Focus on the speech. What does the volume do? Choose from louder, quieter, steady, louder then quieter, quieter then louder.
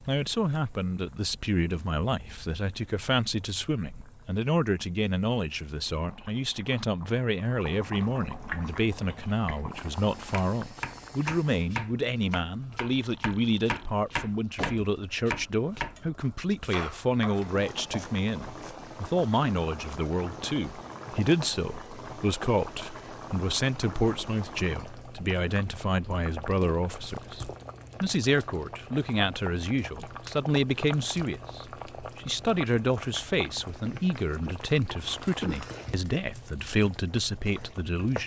steady.